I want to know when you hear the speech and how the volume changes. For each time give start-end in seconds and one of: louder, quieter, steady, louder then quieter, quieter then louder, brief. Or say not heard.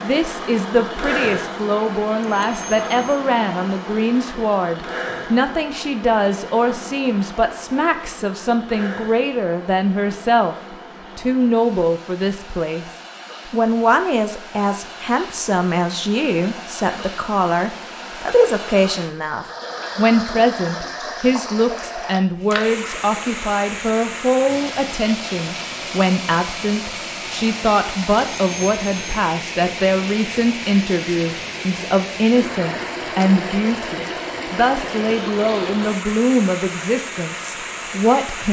0.0-10.6 steady
11.2-12.8 brief
13.4-38.4 steady.